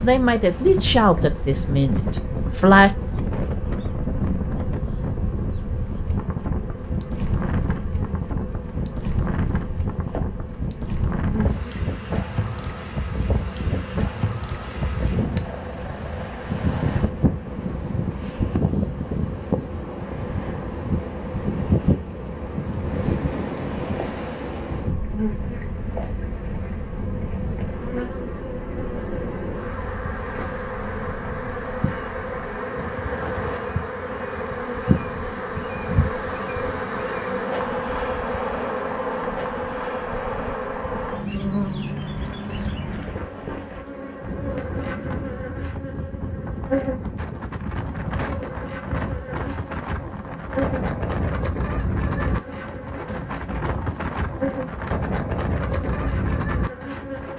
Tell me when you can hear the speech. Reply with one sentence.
The speech can be heard from 0.0 to 2.9 s.